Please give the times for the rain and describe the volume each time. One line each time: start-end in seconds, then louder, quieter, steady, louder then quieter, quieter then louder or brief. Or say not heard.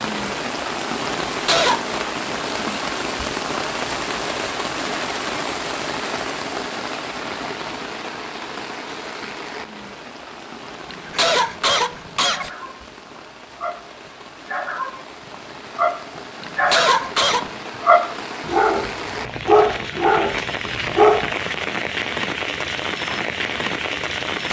0.0-24.4 quieter then louder.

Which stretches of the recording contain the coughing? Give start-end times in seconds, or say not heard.
1.2-2.0, 10.9-12.5, 16.4-17.5.